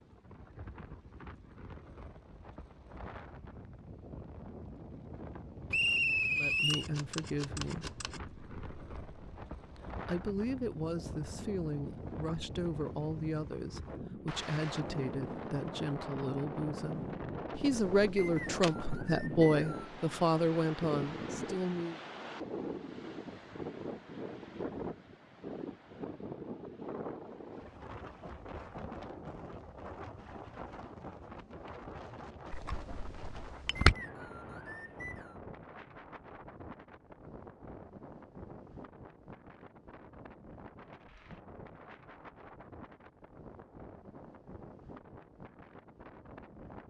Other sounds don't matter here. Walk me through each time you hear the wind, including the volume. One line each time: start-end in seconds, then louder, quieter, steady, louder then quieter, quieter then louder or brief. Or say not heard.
0.0-46.8 louder then quieter.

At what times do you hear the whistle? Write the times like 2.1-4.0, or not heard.
5.7-6.8, 18.1-19.9, 33.8-35.4.